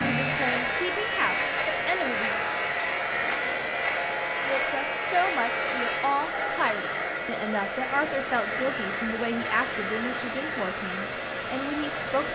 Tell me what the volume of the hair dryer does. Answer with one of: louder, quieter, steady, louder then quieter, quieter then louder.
steady.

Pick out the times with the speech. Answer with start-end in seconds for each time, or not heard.
0.1-2.5, 4.5-12.2.